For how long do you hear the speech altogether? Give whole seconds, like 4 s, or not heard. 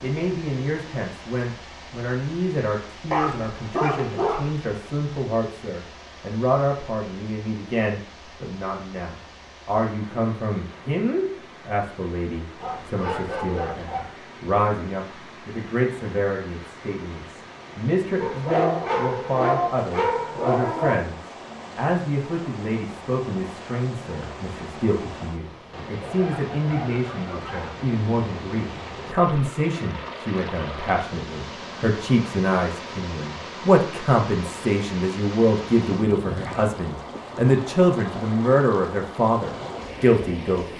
41 s.